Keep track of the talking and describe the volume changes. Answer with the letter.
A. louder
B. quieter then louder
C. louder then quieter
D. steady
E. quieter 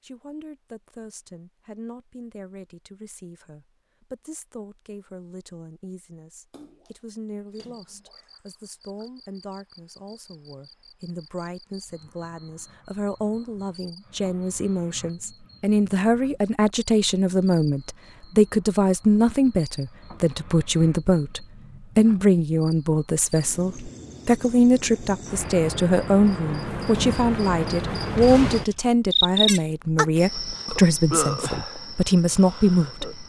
A.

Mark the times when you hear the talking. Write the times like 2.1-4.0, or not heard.
0.0-33.2.